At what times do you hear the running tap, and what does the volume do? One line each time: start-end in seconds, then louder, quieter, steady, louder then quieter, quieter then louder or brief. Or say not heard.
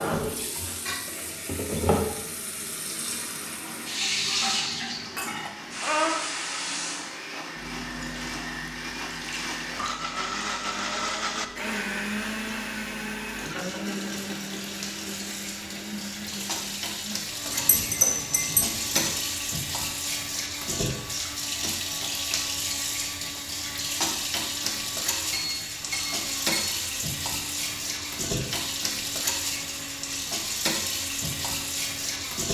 0.0-32.5 quieter then louder.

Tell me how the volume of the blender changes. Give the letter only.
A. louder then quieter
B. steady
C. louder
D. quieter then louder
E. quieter
A.